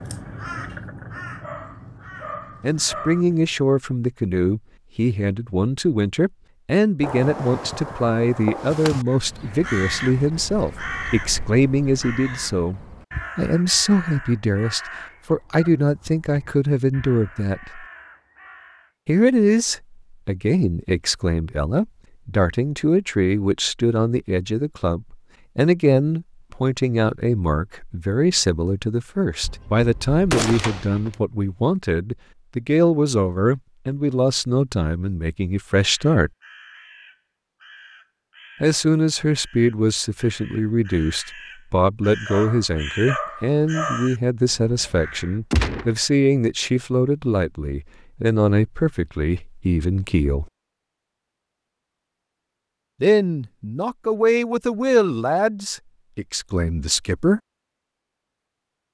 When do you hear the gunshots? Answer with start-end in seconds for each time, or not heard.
7.0-9.1, 29.4-31.2, 45.5-46.0.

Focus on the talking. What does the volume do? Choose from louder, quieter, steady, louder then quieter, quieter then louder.
steady.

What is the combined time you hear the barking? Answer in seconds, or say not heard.
4 s.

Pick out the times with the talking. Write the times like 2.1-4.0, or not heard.
2.6-17.9, 19.1-36.3, 38.6-50.5, 53.0-57.4.